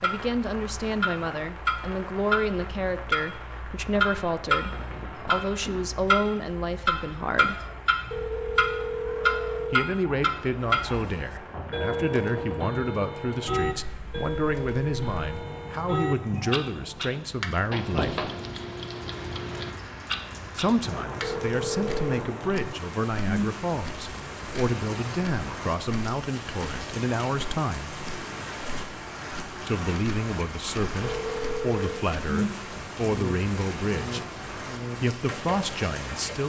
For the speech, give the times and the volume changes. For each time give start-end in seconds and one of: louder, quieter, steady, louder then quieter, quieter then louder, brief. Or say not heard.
0.0-7.7 steady
9.7-18.3 steady
20.6-28.0 steady
29.6-34.2 steady
35.0-36.4 brief.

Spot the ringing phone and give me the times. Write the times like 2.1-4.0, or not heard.
8.1-9.8, 21.2-22.2, 31.0-31.9.